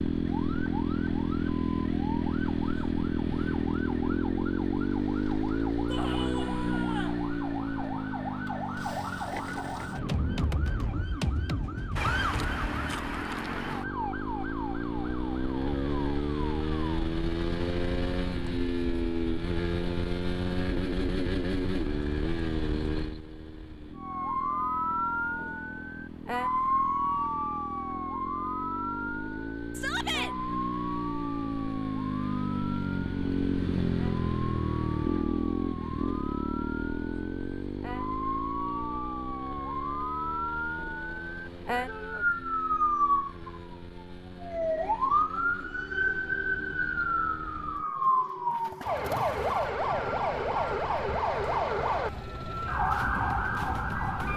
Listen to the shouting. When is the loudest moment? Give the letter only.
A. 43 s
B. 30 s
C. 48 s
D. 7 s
B.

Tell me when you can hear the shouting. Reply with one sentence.
You can hear the shouting from 5.8 to 7.2 s, from 29.8 to 30.4 s and from 41.9 to 42.3 s.